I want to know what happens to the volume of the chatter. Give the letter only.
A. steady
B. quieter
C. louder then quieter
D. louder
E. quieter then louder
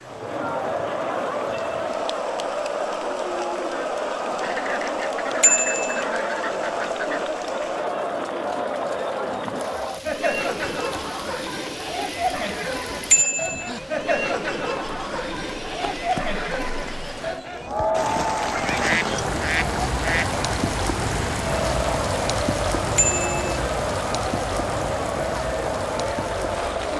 A.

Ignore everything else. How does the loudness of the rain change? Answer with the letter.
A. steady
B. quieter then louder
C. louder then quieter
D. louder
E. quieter
D.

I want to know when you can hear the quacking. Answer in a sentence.
The quacking can be heard from 4.4 to 7.3 s and from 18.6 to 20.4 s.